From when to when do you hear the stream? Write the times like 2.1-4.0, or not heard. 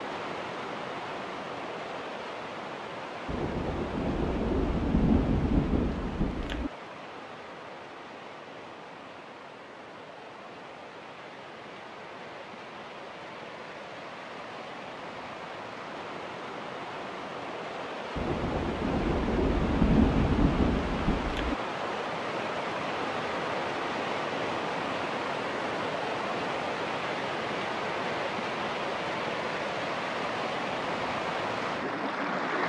0.0-32.6.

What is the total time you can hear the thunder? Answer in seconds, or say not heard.
7 s.